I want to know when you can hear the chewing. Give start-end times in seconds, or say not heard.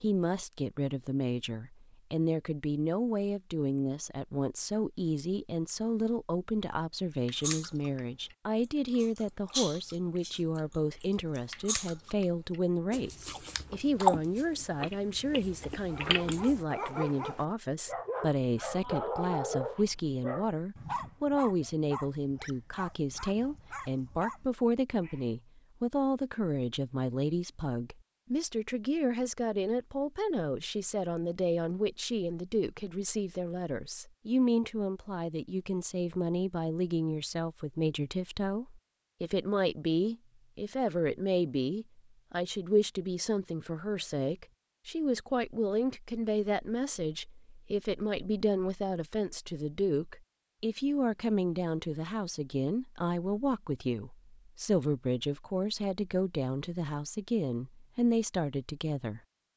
7.2-8.0, 8.6-12.2, 12.9-16.6.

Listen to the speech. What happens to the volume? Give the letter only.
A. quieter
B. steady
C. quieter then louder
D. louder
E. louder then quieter
B.